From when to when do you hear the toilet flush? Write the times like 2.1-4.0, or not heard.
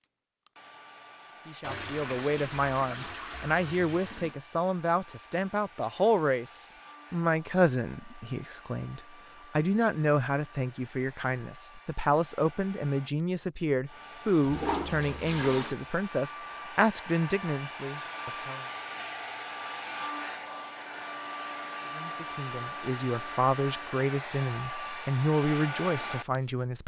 1.6-4.3, 14.4-15.8.